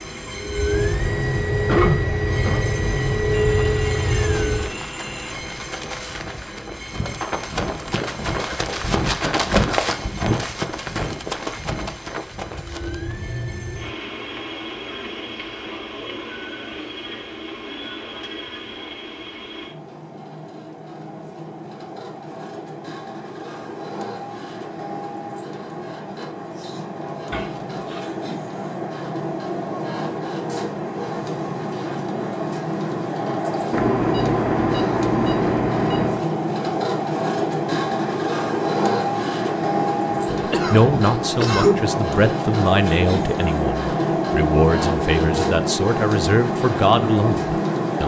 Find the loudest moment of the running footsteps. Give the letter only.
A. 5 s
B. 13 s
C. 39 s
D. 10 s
D.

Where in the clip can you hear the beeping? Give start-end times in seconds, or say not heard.
3.3-5.3, 33.7-36.2.